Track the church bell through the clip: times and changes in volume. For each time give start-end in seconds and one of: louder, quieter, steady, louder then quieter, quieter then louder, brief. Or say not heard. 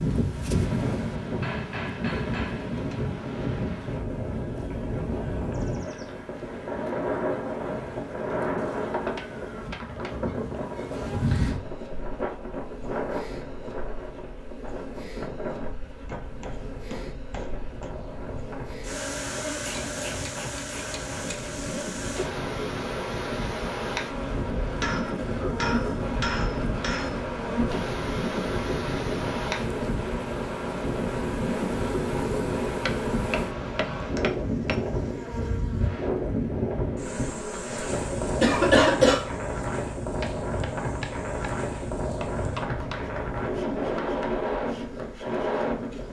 not heard.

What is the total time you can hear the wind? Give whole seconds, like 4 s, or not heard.
46 s.